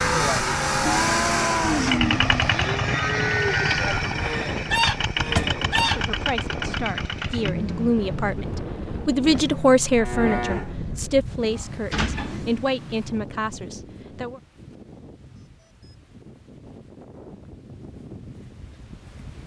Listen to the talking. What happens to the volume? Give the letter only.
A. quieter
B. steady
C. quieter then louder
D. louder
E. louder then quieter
E.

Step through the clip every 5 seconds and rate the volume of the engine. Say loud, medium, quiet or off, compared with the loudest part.
loud, medium, quiet, off.